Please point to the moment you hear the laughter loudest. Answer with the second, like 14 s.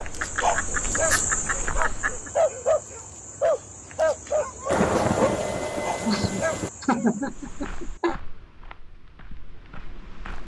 7 s.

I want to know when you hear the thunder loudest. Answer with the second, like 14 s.
5 s.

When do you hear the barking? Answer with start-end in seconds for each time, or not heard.
0.0-7.1.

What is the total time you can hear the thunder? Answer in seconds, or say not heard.
2 s.